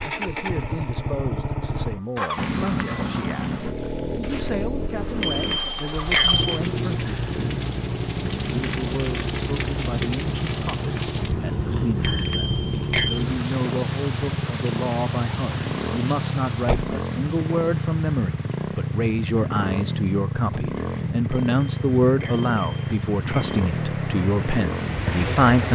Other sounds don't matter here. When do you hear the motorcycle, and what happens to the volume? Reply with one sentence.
You can hear the motorcycle from 0.0 to 25.5 s, at a steady volume.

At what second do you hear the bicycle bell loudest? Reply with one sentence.
The volume of the bicycle bell peaks at 6 seconds.